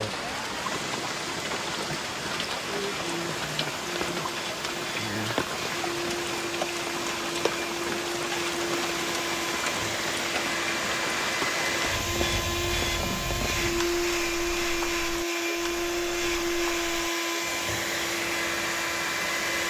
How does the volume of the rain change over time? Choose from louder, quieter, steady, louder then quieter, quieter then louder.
quieter.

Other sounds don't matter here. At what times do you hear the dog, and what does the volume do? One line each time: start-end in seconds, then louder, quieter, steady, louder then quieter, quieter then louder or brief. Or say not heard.
not heard.